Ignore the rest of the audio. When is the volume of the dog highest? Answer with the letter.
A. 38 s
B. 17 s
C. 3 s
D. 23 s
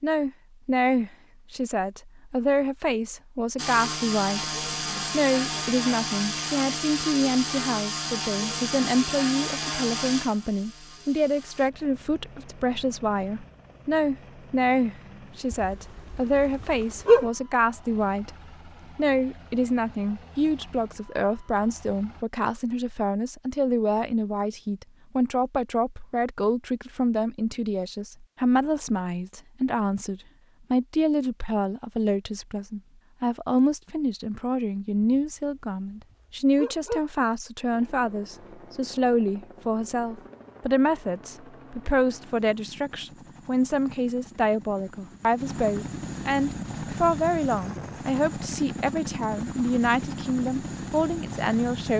B.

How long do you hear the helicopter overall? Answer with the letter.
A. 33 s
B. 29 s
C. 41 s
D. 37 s
A.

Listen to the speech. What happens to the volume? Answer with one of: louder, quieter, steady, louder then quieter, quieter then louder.
steady.